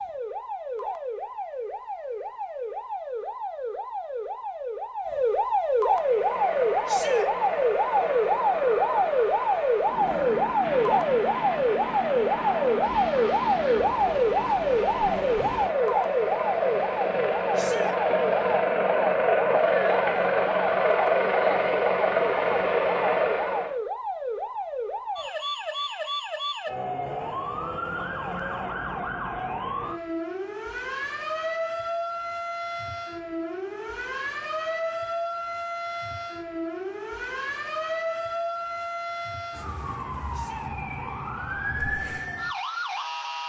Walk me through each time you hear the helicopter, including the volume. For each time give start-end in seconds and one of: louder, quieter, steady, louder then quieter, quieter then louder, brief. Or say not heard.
5.8-23.8 louder.